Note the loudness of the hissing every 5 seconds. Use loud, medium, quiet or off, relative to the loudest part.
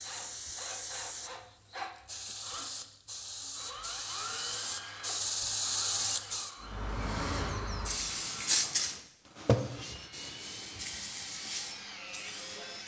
medium, loud, medium.